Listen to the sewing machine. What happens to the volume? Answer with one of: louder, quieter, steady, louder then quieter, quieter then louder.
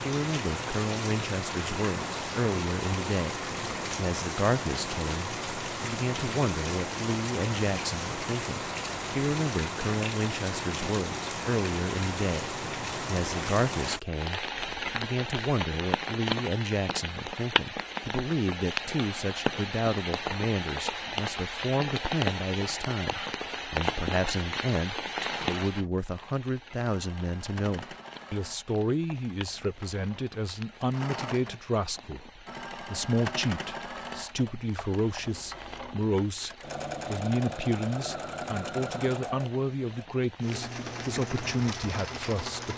louder.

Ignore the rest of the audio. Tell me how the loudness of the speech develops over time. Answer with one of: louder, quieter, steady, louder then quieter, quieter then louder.
steady.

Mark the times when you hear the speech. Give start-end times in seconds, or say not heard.
0.0-42.7.